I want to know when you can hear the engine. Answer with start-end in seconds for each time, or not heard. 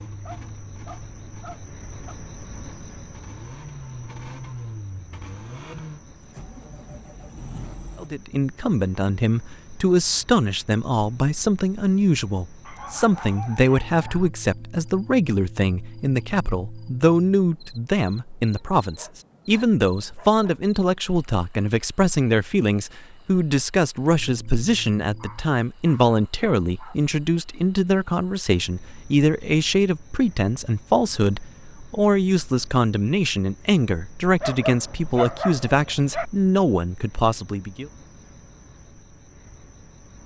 0.0-8.1.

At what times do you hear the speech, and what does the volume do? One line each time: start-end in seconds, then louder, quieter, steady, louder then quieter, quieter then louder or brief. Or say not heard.
8.0-37.9 steady.